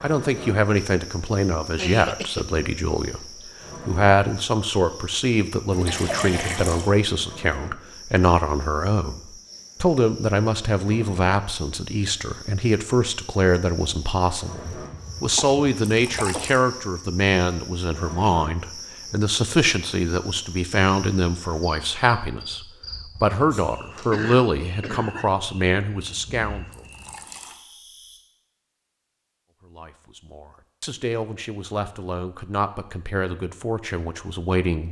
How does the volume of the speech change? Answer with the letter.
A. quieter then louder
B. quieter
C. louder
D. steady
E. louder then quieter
B.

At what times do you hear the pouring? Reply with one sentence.
The pouring can be heard from 5.7 to 6.9 s, from 15.8 to 16.6 s and from 26.7 to 27.6 s.